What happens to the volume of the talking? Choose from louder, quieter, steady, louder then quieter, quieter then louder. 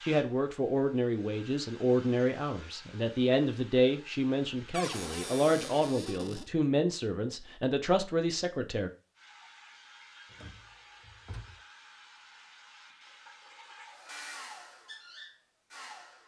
steady.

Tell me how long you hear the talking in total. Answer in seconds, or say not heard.
9 s.